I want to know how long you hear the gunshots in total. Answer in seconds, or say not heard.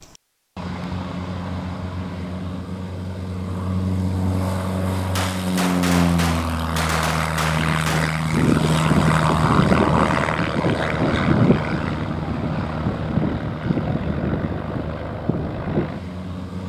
3 s.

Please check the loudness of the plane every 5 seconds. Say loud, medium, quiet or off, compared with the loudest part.
medium, loud, loud, medium.